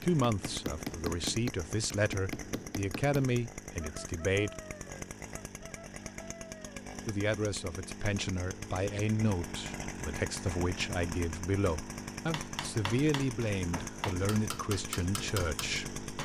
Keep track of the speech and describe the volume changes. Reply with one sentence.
The volume of the speech stays about the same.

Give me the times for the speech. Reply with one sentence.
You can hear the speech from 0.0 to 4.5 s and from 7.0 to 16.0 s.